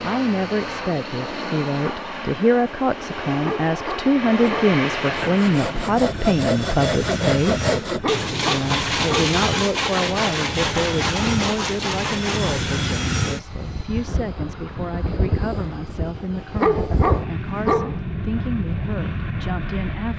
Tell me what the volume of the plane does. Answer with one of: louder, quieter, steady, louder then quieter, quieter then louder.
steady.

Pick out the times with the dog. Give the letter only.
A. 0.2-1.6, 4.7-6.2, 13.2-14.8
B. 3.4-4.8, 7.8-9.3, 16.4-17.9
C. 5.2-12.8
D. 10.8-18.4
B.